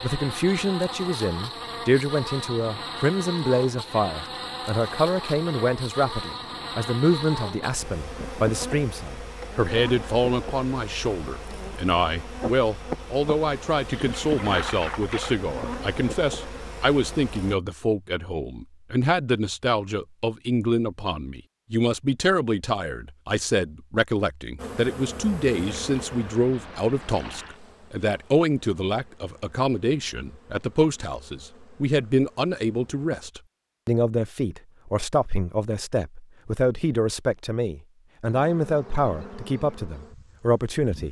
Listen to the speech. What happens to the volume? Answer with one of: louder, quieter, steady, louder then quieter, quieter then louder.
steady.